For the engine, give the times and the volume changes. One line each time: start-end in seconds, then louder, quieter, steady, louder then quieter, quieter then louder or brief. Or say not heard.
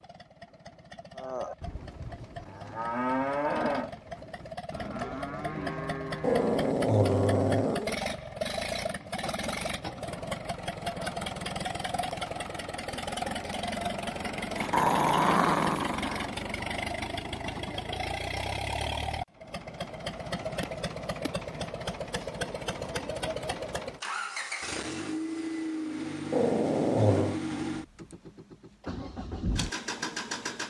0.0-30.6 louder.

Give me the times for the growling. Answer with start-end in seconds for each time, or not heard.
6.2-8.0, 14.6-16.3, 26.3-27.4.